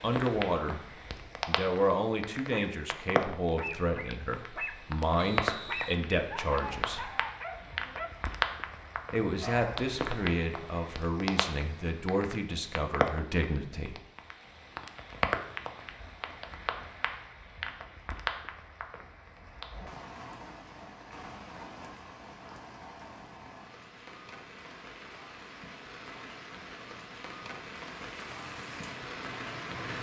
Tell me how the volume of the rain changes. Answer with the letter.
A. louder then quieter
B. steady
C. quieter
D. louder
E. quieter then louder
C.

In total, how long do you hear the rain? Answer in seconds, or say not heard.
30 s.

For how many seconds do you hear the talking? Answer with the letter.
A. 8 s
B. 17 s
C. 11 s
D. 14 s
C.